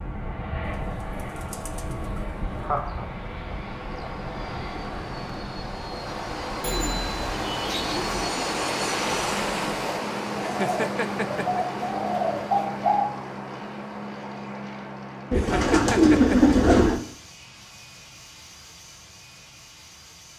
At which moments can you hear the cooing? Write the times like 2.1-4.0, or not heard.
0.6-2.8, 6.6-8.3, 10.3-13.1, 15.3-17.0.